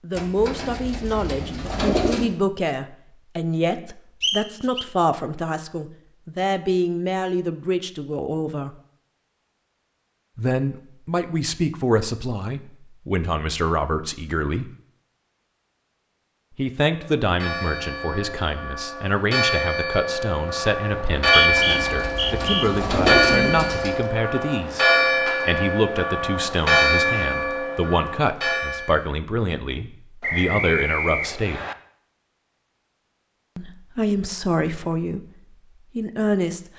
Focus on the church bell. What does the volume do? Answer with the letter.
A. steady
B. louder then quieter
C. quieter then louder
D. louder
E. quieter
D.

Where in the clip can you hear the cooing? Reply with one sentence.
You can hear the cooing from 0.1 to 2.4 s and from 21.4 to 24.1 s.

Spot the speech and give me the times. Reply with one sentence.
The speech can be heard from 0.0 to 8.8 s, from 10.3 to 14.7 s, from 16.6 to 31.6 s, from 33.5 to 35.2 s and from 36.0 to 36.7 s.